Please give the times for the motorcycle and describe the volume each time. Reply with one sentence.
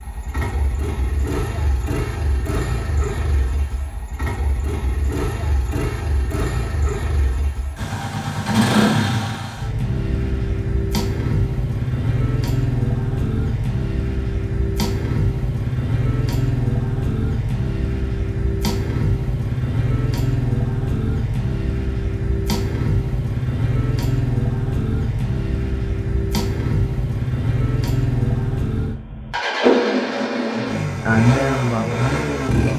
The motorcycle can be heard from 0.0 to 32.7 s, getting louder.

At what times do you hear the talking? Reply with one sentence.
The talking can be heard from 30.6 to 32.7 s.